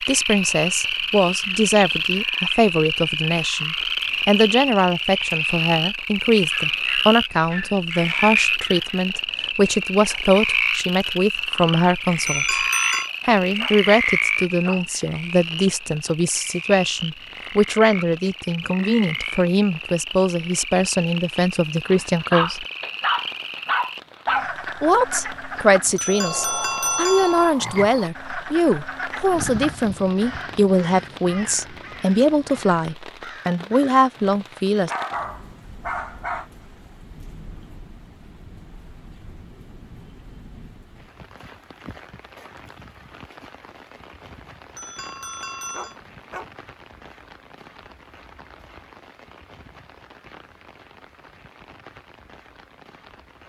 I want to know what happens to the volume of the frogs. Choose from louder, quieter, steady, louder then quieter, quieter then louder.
quieter.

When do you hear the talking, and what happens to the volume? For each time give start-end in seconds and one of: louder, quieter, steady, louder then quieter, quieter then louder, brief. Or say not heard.
0.1-12.7 steady
13.2-22.6 steady
24.8-34.9 steady.